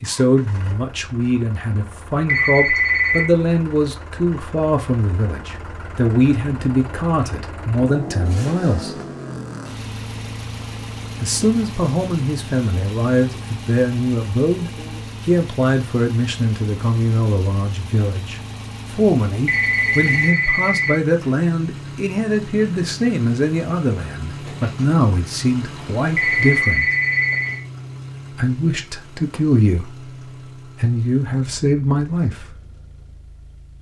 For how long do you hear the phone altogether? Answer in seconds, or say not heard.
4 s.